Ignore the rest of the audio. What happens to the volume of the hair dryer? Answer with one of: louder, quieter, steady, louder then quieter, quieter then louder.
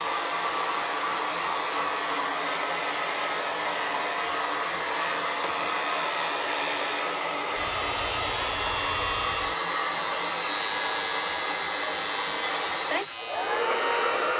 steady.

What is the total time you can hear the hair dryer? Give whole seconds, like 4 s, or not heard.
14 s.